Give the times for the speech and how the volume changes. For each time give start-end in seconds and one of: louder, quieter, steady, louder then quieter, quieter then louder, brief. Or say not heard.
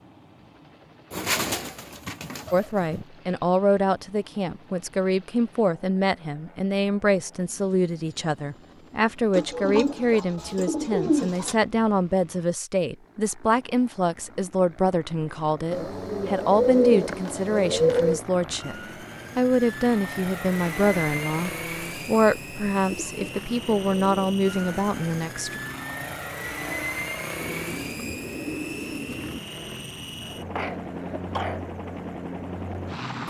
2.5-18.8 steady
19.4-25.6 steady.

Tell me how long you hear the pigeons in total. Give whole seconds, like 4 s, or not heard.
10 s.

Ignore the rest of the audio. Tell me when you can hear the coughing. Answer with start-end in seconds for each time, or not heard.
30.2-31.6.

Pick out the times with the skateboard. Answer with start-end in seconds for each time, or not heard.
not heard.